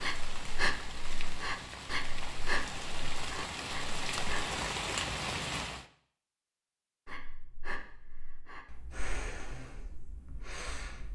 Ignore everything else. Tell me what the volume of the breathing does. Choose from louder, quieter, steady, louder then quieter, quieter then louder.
quieter.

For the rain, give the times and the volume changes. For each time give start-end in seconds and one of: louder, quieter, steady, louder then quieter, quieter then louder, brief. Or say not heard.
0.0-5.8 louder.